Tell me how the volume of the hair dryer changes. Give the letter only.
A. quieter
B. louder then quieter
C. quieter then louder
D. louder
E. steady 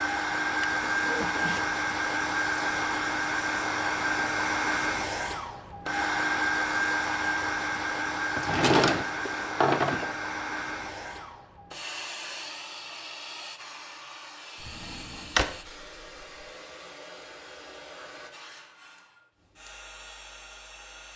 A.